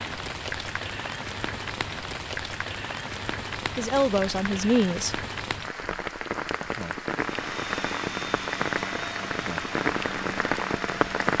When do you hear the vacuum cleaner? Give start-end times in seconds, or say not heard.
7.2-11.3.